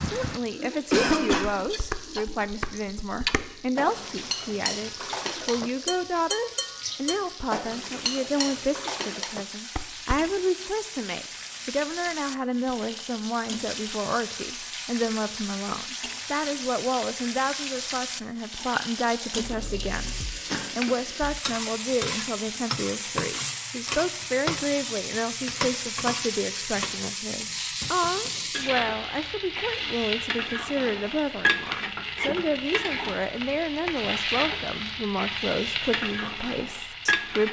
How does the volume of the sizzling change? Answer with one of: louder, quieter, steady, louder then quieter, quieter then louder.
louder.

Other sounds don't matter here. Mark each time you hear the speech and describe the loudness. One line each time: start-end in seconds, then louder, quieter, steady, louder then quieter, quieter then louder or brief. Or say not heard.
0.0-37.4 steady.